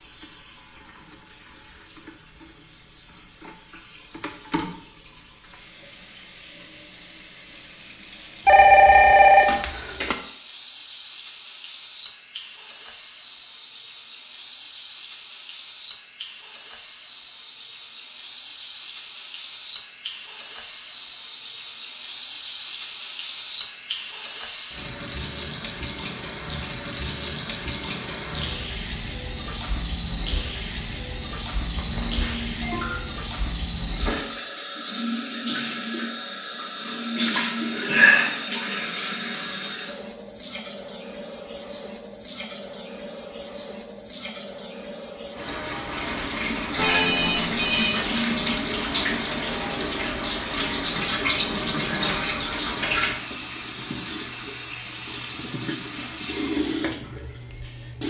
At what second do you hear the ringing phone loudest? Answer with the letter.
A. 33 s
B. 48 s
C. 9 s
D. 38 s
C.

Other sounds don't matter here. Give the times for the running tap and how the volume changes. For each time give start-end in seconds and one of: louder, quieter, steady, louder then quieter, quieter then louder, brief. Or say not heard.
0.0-58.0 louder.